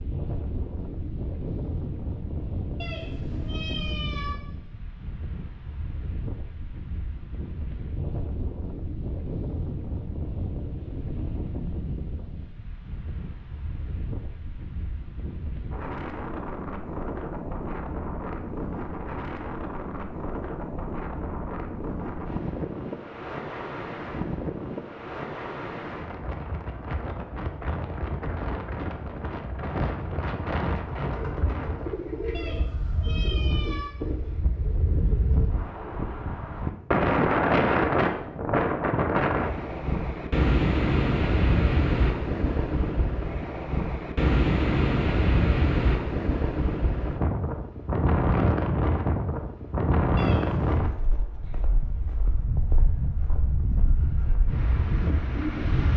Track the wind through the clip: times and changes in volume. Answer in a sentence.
You can hear the wind from 0.0 to 55.9 s, getting louder.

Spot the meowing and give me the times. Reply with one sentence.
You can hear the meowing from 2.8 to 4.3 s, from 32.3 to 33.9 s and from 50.1 to 50.8 s.